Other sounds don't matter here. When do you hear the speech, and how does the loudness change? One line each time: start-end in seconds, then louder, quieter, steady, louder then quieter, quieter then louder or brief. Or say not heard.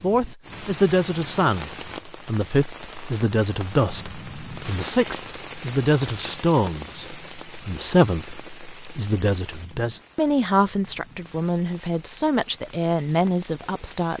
0.0-14.1 steady.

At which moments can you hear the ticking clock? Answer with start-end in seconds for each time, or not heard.
not heard.